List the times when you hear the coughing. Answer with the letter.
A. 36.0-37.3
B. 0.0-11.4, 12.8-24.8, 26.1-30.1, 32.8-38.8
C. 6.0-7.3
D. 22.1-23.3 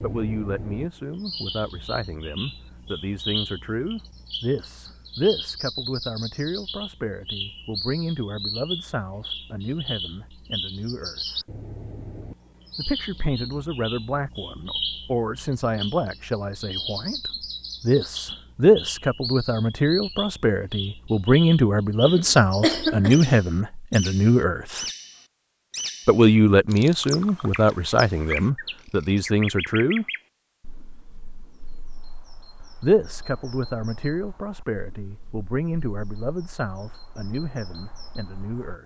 D.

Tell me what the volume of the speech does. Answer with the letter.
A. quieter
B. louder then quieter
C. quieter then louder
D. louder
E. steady
B.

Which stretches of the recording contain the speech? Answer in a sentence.
You can hear the speech from 0.0 to 11.4 s, from 12.8 to 24.8 s, from 26.1 to 30.1 s and from 32.8 to 38.8 s.